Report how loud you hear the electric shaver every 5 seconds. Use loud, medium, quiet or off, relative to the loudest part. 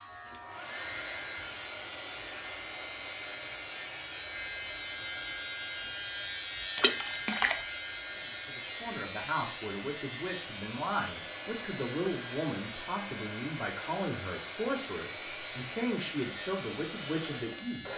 medium, loud, medium, medium.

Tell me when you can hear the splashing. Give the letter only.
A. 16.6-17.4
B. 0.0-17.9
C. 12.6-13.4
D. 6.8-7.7
D.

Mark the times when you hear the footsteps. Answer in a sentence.
You can't hear the footsteps here.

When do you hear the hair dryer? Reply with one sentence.
You can hear the hair dryer from 0.0 to 17.9 s.